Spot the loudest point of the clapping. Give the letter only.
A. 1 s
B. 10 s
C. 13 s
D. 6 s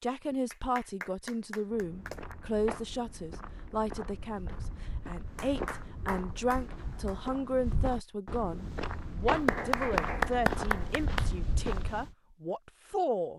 B.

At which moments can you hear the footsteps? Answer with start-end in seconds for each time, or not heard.
1.7-12.1.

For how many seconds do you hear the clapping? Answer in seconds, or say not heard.
6 s.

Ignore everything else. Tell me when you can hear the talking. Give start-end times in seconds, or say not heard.
0.0-13.3.